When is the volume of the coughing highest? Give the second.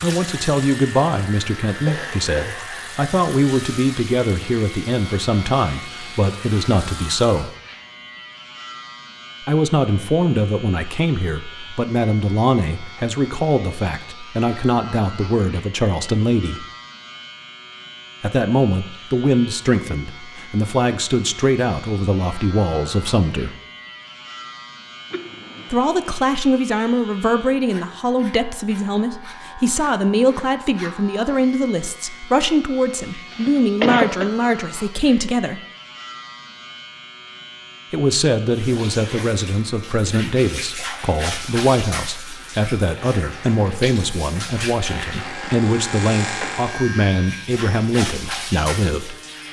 34 s.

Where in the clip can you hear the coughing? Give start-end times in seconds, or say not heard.
1.8-2.8, 25.1-25.9, 33.1-34.3.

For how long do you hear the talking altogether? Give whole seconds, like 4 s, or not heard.
41 s.